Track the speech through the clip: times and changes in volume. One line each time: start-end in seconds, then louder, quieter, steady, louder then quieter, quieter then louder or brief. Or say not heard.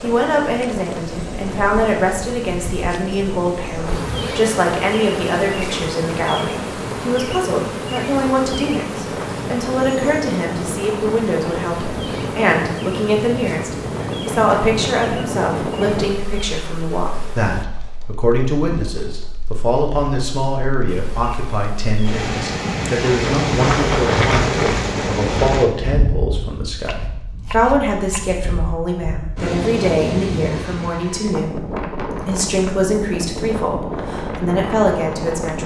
0.0-35.6 steady.